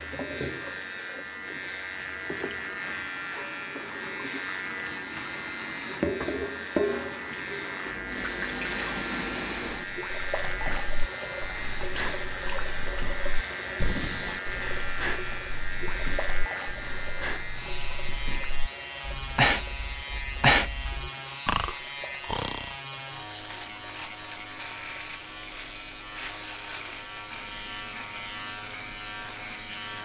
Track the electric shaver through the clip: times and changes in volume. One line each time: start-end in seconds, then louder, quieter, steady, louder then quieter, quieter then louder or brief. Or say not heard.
0.0-30.0 steady.